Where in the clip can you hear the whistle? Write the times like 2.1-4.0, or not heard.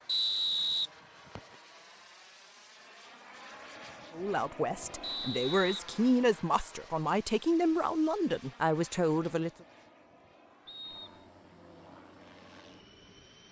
0.1-1.4, 5.0-5.8, 10.7-11.2.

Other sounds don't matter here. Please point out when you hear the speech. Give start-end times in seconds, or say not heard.
4.1-9.5.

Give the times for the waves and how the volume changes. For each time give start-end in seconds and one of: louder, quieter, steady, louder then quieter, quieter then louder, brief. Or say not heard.
not heard.